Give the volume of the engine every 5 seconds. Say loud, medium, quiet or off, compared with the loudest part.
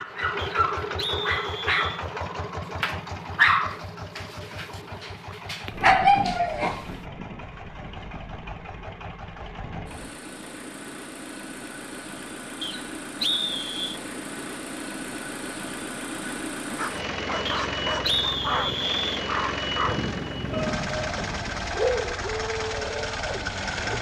loud, medium, medium, loud, loud.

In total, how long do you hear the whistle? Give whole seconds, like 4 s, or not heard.
5 s.